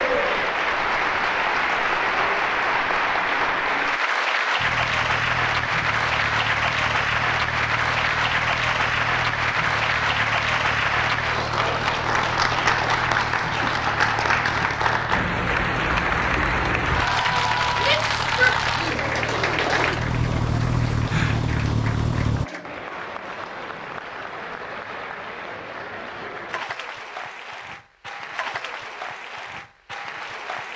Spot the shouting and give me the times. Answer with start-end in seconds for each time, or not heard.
17.8-19.1.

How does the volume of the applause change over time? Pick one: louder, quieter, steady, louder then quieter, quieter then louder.
quieter.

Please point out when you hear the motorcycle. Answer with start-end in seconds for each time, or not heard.
4.5-22.4.